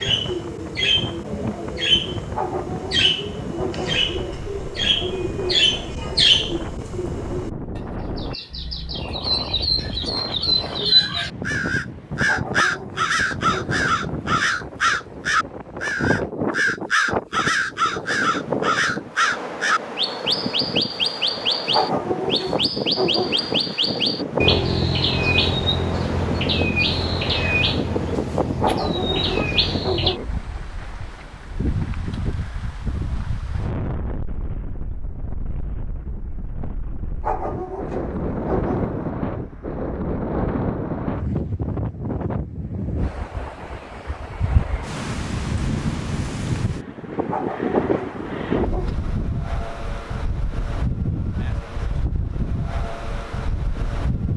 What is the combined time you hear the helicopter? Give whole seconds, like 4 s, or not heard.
not heard.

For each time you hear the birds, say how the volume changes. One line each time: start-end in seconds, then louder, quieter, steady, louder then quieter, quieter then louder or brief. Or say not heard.
0.0-30.1 steady.